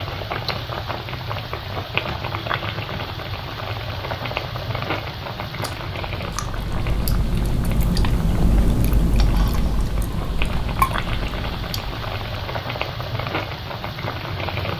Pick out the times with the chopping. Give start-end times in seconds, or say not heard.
not heard.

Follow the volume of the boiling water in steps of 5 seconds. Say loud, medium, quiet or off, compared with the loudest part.
loud, medium, loud.